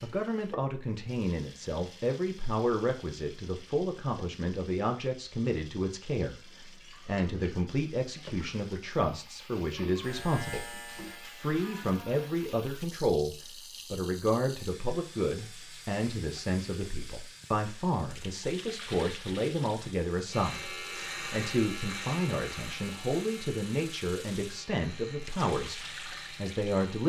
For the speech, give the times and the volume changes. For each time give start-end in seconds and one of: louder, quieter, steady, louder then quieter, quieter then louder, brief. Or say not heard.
0.0-27.0 steady.